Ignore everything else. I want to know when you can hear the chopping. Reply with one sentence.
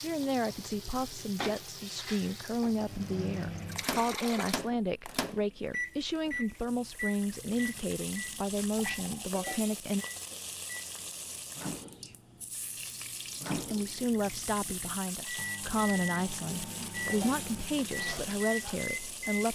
The chopping can't be heard in this clip.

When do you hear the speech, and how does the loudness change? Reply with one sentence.
You can hear the speech from 0.0 to 10.1 s, at a steady volume; and from 13.5 to 19.4 s, at a steady volume.